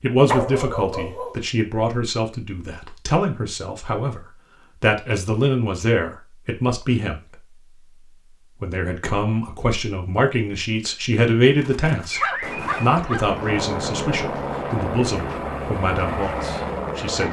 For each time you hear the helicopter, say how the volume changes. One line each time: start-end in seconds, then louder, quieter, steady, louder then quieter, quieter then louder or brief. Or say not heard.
13.2-17.2 steady.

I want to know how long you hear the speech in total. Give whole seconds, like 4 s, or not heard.
16 s.